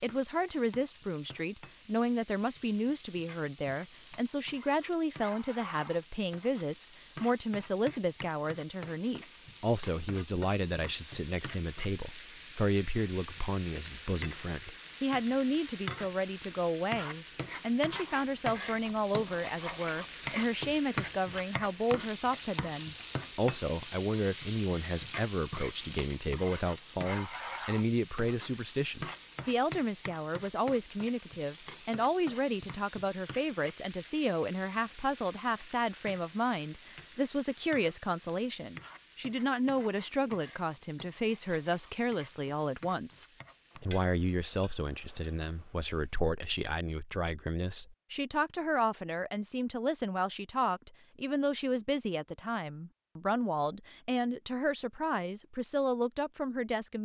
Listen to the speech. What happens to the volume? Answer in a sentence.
The volume of the speech stays about the same.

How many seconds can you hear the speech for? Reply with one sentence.
The speech can be heard for 57 seconds in total.